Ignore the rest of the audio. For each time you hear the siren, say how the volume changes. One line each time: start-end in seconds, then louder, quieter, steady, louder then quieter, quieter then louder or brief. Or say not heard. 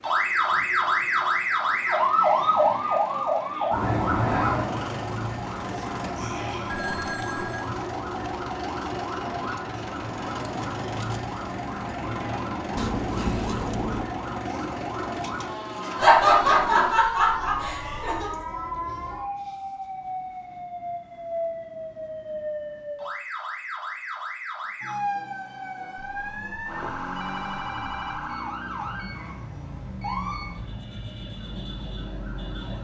0.0-32.7 quieter.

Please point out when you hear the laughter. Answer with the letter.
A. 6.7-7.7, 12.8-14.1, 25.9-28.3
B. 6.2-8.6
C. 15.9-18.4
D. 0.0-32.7
C.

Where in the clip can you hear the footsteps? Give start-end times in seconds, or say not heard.
not heard.